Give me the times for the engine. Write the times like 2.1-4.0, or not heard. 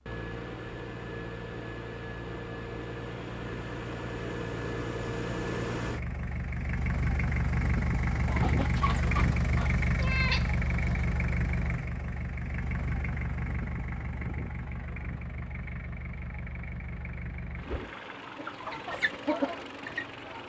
0.0-20.4.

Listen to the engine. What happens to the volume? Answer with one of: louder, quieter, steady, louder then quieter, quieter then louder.
louder then quieter.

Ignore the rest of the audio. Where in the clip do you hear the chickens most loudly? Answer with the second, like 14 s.
19 s.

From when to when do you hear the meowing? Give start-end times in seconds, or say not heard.
9.9-11.1.